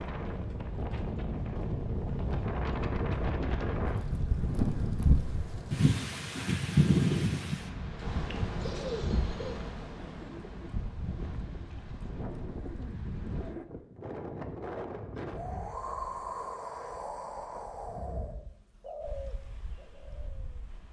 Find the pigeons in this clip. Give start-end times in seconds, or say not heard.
8.6-13.7, 18.8-20.6.